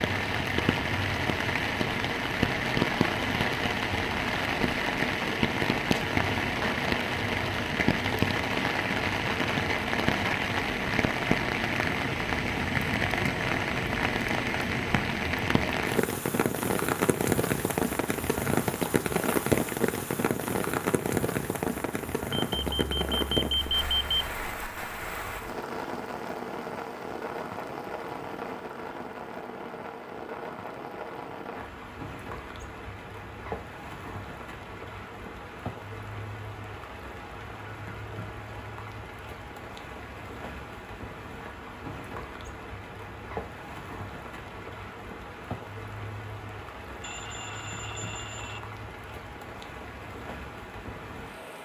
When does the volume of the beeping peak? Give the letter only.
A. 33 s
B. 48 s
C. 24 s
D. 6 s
C.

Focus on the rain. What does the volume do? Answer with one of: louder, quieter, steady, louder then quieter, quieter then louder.
quieter.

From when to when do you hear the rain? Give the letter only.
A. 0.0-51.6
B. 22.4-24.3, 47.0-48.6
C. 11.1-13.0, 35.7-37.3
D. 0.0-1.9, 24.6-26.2
A.